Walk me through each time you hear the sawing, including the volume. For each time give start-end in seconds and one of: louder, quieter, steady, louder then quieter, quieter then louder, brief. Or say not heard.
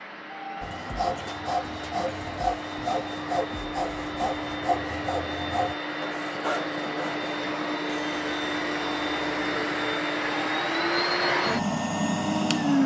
0.6-10.8 quieter.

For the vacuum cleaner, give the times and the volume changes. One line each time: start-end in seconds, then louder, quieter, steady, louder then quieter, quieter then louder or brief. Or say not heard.
0.0-12.8 louder.